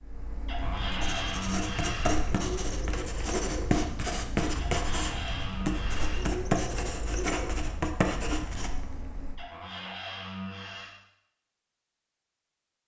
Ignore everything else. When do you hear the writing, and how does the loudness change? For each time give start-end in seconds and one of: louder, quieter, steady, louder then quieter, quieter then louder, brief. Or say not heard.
0.6-8.7 steady.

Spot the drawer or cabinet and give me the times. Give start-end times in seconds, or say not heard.
0.5-2.2, 4.5-6.3, 9.3-10.9.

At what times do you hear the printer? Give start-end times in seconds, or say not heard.
0.0-9.4.